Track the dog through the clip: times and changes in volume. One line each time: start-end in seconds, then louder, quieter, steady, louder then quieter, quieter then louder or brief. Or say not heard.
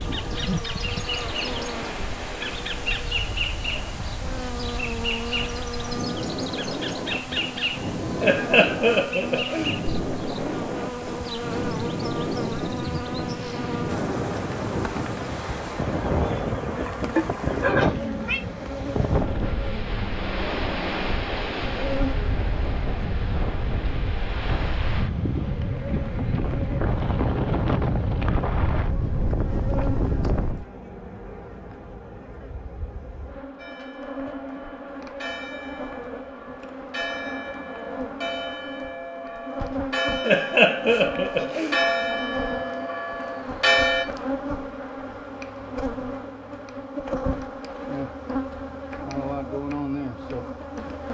not heard.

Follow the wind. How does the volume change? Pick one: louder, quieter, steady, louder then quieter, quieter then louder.
louder.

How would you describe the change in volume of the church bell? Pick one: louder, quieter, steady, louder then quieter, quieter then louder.
louder.